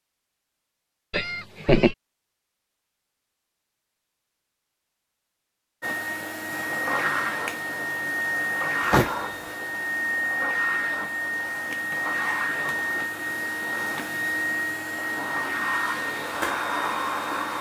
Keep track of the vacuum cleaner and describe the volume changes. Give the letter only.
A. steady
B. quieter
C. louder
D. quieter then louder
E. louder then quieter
A.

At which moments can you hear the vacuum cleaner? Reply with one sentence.
The vacuum cleaner can be heard from 5.8 to 17.5 s.